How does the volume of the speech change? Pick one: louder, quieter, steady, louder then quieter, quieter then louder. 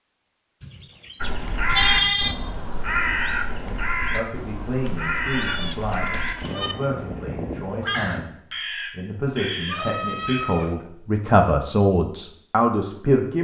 louder.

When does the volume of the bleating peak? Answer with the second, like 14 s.
2 s.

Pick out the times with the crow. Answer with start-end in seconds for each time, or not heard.
1.2-10.4.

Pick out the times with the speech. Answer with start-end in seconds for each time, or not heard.
3.5-13.3.